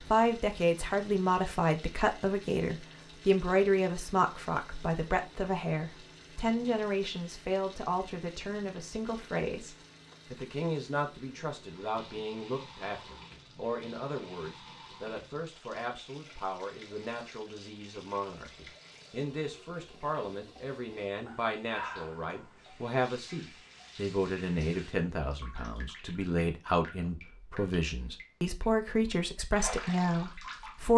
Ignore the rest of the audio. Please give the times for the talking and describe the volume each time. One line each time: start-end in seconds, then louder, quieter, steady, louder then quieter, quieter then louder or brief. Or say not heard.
0.1-30.9 quieter then louder.